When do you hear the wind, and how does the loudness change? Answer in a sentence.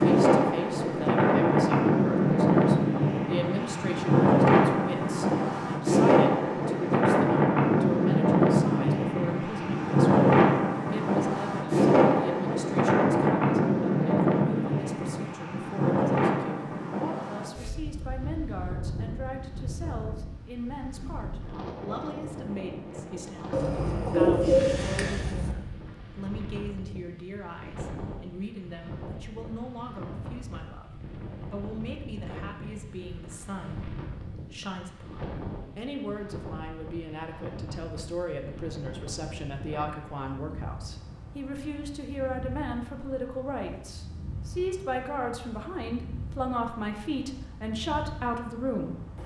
You can hear the wind from 0.0 to 49.2 s, getting quieter.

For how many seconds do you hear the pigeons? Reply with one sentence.
You can hear the pigeons for 2 seconds altogether.